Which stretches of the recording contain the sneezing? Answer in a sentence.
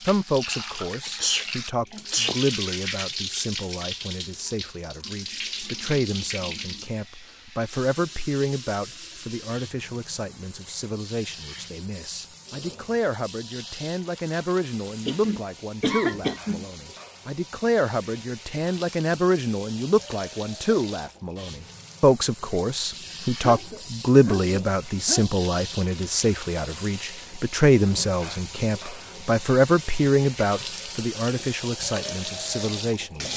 You can hear the sneezing from 1.0 to 2.4 s, from 15.1 to 16.6 s and from 23.4 to 25.3 s.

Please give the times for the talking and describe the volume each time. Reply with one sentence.
You can hear the talking from 0.0 to 33.3 s, getting louder.